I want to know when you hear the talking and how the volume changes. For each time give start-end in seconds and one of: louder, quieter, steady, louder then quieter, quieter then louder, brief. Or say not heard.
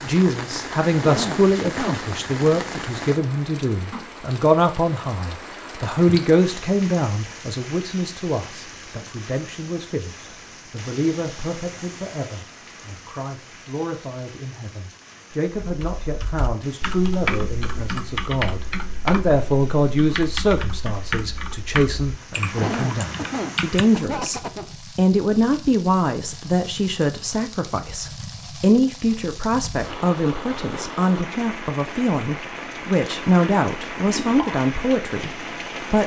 0.0-36.0 quieter then louder.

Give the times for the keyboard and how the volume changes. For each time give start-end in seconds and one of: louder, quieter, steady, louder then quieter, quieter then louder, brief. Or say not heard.
15.6-24.4 steady.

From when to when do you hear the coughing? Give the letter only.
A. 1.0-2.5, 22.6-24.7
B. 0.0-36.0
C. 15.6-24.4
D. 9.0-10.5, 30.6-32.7
A.